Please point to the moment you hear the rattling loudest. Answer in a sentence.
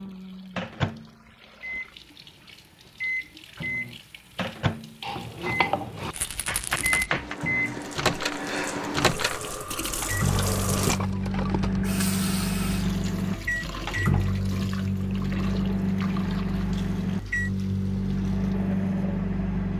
The volume of the rattling peaks at 11 seconds.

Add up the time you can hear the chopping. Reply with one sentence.
The chopping can be heard for 2 seconds in total.